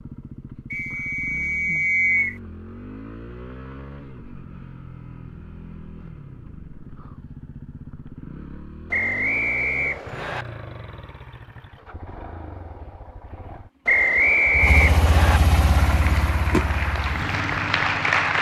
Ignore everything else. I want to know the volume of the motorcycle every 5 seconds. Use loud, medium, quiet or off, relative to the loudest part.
quiet, quiet, medium, loud.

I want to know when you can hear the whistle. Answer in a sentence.
The whistle can be heard from 0.7 to 2.4 s, from 8.9 to 10.4 s and from 13.8 to 15.4 s.